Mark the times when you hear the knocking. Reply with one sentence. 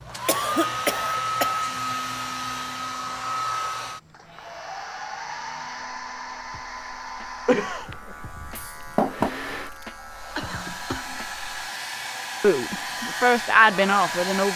The knocking can be heard from 8.6 to 9.3 s.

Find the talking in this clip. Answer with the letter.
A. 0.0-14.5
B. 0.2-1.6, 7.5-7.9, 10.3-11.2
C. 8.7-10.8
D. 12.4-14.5
D.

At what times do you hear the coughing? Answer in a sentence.
The coughing can be heard from 0.2 to 1.6 s, from 7.5 to 7.9 s and from 10.3 to 11.2 s.